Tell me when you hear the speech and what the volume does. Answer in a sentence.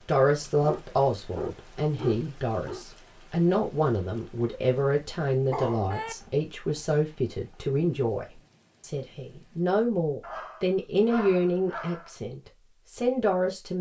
You can hear the speech from 0.1 to 13.7 s, at a steady volume.